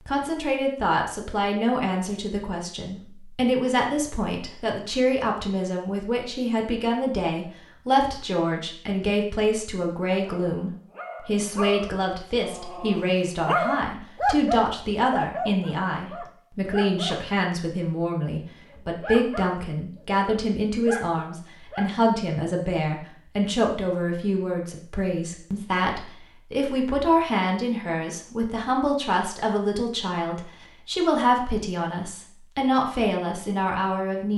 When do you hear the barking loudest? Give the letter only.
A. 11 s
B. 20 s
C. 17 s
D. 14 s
D.